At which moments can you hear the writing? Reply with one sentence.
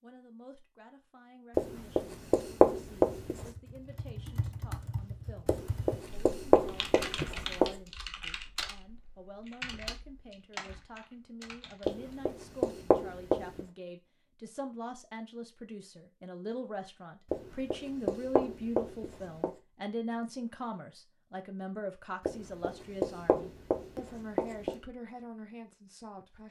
The writing can be heard from 1.6 to 3.5 s, from 5.5 to 7.8 s, from 11.8 to 13.7 s, from 17.3 to 19.5 s and from 22.2 to 24.8 s.